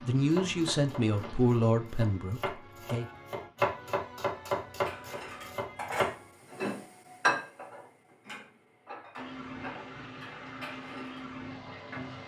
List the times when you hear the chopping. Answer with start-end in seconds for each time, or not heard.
0.2-6.2.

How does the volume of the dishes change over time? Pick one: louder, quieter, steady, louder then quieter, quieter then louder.
louder then quieter.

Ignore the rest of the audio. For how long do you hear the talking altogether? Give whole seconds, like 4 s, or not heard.
3 s.